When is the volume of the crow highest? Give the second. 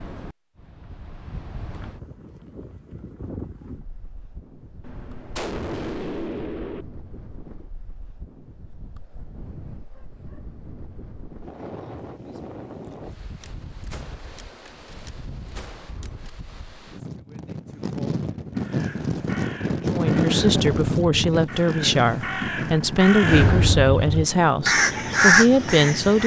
25 s.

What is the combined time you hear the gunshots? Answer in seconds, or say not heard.
5 s.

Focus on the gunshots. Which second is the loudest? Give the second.
6 s.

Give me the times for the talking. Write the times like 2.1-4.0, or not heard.
19.9-26.2.